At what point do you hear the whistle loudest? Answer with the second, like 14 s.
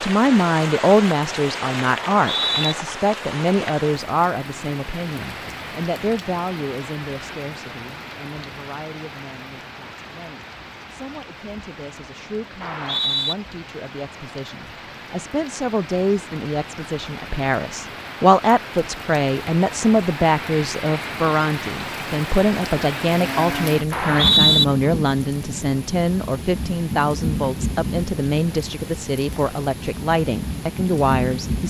24 s.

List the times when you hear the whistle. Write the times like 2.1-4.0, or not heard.
1.9-2.8, 12.6-13.3, 23.9-24.6.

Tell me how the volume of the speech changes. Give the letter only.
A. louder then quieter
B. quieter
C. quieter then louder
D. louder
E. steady
C.